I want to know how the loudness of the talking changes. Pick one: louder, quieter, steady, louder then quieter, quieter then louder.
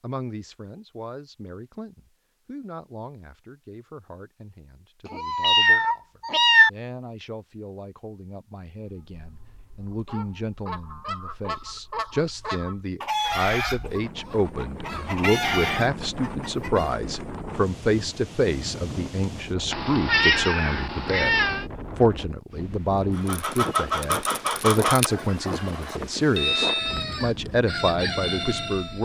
louder.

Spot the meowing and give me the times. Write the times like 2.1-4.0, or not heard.
5.1-6.7, 19.7-21.6.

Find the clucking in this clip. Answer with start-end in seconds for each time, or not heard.
9.1-16.9, 23.1-29.0.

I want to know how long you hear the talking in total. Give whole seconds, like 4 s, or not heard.
29 s.